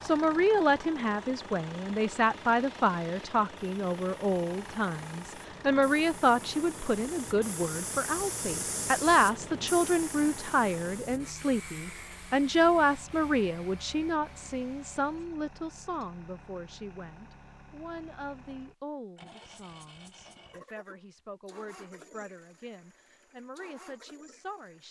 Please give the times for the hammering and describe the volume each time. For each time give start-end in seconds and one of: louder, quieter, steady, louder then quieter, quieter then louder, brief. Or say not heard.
not heard.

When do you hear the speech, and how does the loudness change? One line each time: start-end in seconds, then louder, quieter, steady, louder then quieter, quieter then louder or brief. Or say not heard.
0.0-24.8 quieter.